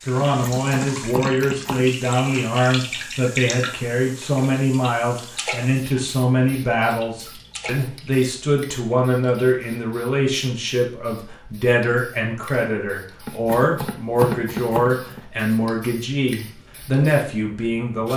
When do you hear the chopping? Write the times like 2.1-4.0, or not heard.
0.2-1.9, 13.2-15.2.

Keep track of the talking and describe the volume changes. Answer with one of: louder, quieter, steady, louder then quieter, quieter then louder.
steady.